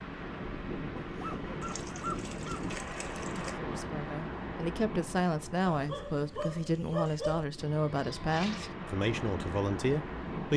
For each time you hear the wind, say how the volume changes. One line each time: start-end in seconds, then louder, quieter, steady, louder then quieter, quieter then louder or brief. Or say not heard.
0.0-10.5 quieter then louder.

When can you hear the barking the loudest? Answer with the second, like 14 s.
7 s.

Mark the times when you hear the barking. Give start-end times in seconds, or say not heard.
0.9-2.7, 5.7-7.5.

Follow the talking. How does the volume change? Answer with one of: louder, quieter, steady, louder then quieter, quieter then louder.
steady.